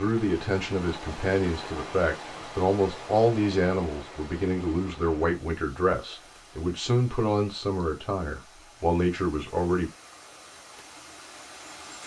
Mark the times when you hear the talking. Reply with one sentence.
You can hear the talking from 0.0 to 9.9 s.